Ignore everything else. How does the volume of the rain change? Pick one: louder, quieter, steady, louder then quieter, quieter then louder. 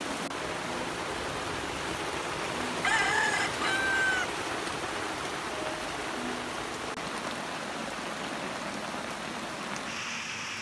steady.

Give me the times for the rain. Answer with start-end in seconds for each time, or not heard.
0.0-10.5.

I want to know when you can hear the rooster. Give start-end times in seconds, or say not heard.
2.8-4.3.